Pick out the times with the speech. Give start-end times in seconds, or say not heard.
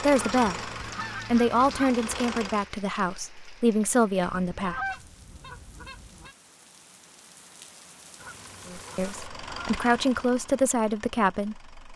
0.0-4.8, 8.7-11.7.